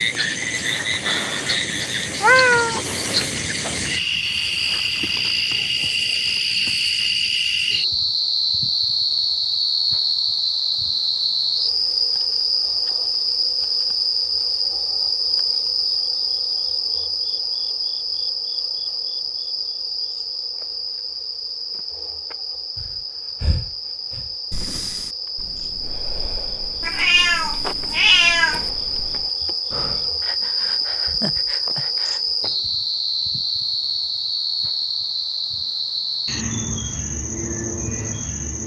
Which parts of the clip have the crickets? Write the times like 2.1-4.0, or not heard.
0.0-38.6.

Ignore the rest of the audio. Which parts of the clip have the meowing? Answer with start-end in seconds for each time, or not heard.
2.0-2.8, 26.8-28.6.